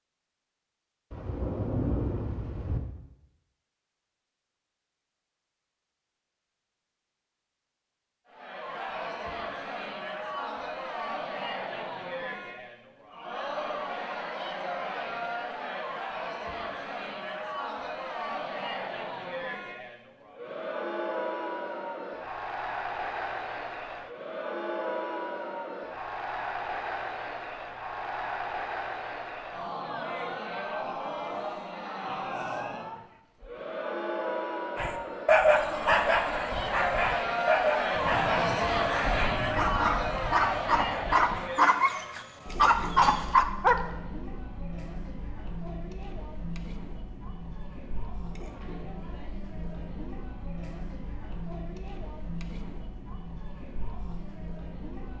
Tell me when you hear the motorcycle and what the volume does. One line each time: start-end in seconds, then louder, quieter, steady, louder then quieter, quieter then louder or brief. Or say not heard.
not heard.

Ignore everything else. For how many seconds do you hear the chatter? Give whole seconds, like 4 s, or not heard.
47 s.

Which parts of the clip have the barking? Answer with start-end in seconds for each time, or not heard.
34.8-43.8.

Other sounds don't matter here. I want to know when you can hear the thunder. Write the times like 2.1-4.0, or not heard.
1.1-2.8, 37.9-41.4.